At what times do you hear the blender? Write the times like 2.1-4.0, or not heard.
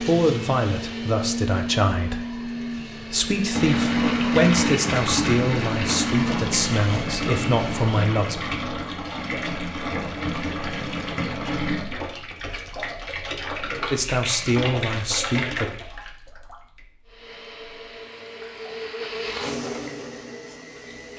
0.0-8.1, 17.1-21.1.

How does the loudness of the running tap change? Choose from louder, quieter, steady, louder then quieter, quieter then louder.
quieter.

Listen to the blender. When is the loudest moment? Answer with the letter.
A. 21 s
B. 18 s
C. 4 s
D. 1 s
C.